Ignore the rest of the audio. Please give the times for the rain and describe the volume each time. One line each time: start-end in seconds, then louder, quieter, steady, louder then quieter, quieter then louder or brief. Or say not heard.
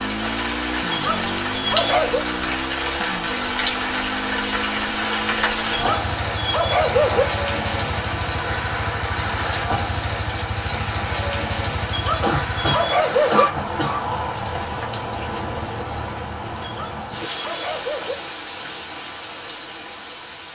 0.0-20.4 quieter.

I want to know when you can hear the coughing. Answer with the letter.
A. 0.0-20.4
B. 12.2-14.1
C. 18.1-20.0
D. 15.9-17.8
B.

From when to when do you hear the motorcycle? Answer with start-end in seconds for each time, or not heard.
0.0-12.7.